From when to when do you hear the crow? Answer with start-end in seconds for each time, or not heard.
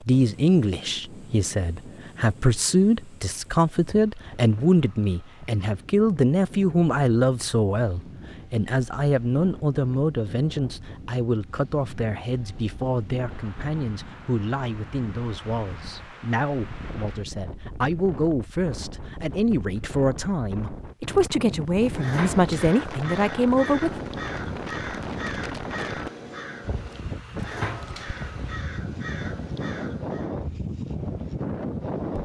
21.8-30.3.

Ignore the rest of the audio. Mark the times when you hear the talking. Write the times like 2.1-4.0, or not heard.
0.0-23.9.